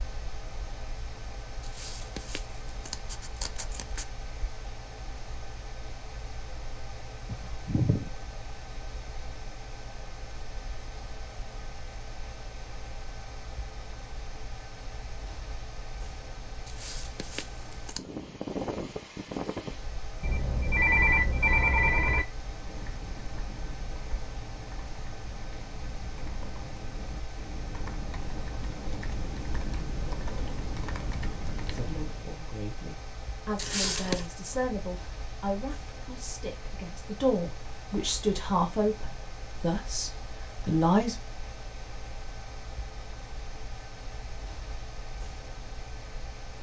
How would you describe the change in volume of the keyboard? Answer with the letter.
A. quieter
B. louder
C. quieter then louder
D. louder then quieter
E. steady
B.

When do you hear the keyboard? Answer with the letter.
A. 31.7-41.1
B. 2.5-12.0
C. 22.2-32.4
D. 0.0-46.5
C.